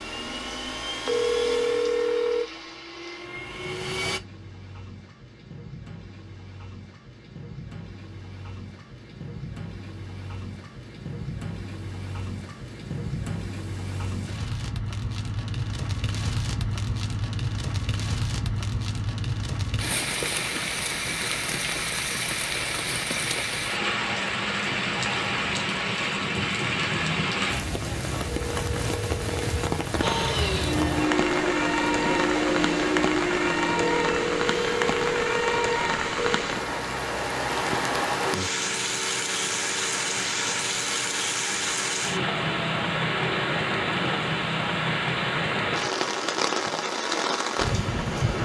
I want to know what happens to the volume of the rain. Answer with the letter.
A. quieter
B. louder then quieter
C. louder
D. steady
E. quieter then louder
C.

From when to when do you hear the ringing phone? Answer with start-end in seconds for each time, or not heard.
1.1-2.5, 28.2-29.7, 33.8-36.5.